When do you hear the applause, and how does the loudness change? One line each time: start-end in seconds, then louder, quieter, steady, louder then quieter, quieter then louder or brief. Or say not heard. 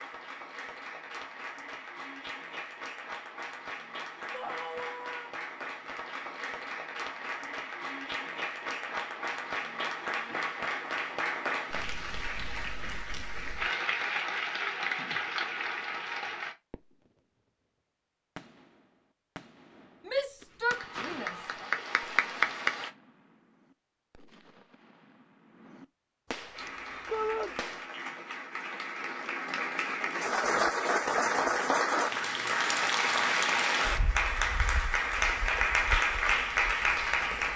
0.0-16.6 louder
20.6-22.9 brief
26.6-37.5 louder.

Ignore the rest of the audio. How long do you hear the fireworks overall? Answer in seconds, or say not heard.
10 s.